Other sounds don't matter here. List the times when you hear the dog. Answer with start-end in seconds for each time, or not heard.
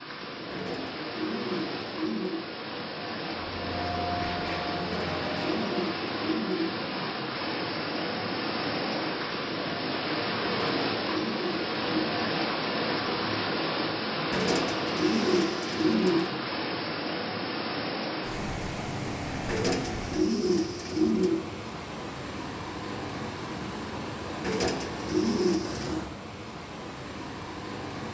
not heard.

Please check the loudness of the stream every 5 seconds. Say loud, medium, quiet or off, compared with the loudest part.
medium, loud, loud, loud, medium, medium.